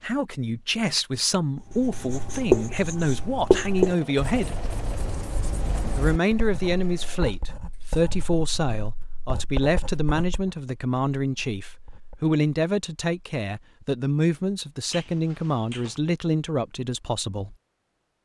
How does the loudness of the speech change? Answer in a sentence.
The loudness of the speech stays about the same.